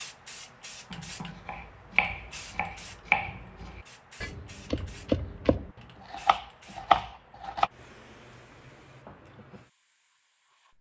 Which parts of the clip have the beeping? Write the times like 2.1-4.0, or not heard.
not heard.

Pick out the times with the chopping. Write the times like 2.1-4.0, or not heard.
0.9-7.7.